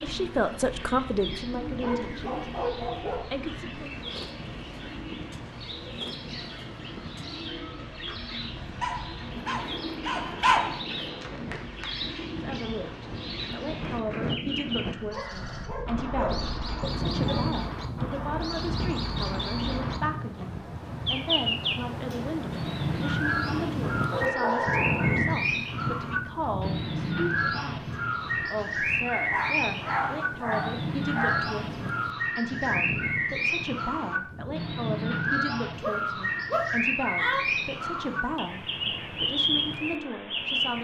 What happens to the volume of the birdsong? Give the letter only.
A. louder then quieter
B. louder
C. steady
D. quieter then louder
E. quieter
B.